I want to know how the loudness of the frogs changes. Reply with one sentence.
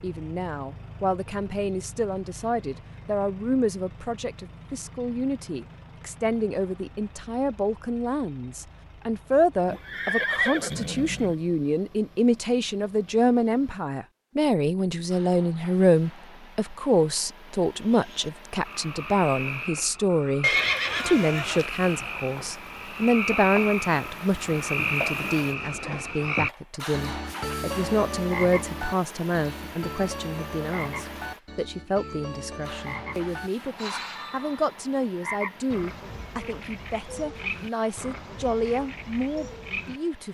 The loudness of the frogs goes up, then down.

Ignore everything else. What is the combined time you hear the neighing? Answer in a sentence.
You can hear the neighing for 3 seconds altogether.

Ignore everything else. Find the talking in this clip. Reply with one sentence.
The talking can be heard from 0.0 to 40.2 s.